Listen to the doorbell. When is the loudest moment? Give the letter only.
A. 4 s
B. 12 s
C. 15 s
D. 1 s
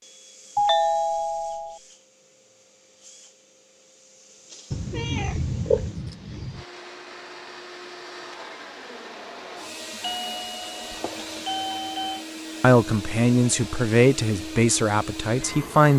D.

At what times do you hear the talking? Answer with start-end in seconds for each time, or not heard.
12.6-15.9.